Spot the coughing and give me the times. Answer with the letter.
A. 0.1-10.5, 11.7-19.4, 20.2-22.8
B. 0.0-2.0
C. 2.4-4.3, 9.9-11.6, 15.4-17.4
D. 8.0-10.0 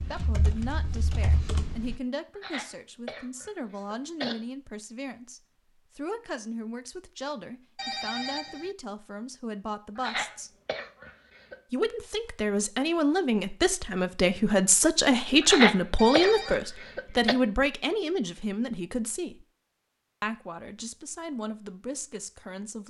C.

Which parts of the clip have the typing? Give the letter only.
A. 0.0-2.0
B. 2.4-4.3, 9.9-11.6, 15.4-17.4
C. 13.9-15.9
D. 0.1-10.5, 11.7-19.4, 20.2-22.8
A.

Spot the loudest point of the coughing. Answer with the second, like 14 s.
16 s.